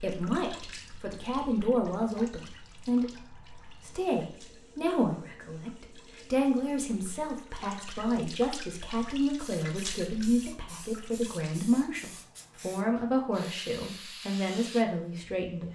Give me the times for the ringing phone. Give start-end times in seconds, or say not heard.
not heard.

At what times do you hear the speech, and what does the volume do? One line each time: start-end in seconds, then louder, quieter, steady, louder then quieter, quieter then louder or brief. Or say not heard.
0.0-15.7 steady.